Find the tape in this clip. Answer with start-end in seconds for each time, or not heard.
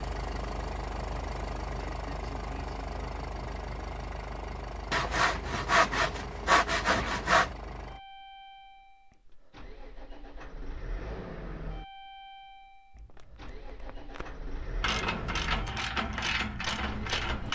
12.9-14.4.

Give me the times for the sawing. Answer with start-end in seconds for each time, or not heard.
4.9-7.5.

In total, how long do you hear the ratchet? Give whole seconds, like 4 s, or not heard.
3 s.